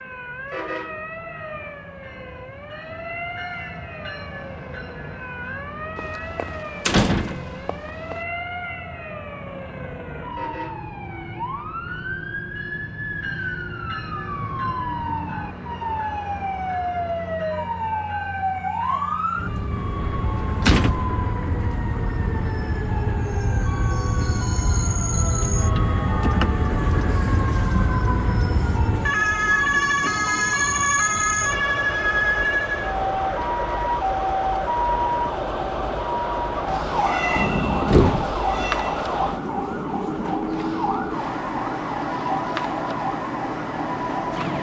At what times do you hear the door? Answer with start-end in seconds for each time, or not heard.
6.0-8.2, 20.0-21.1, 37.4-38.5.